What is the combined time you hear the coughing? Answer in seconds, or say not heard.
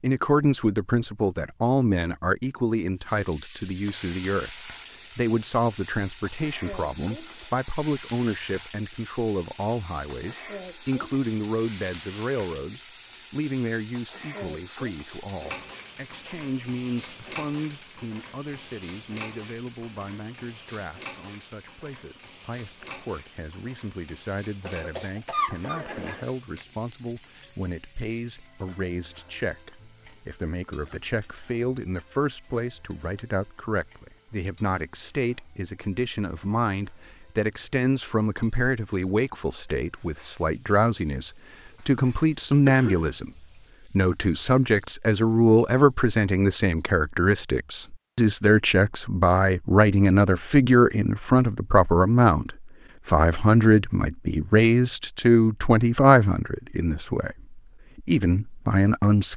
2 s.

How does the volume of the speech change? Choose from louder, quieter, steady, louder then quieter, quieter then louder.
quieter then louder.